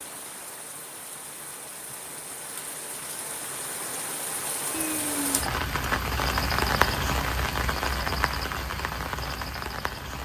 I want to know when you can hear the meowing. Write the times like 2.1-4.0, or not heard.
4.7-5.4.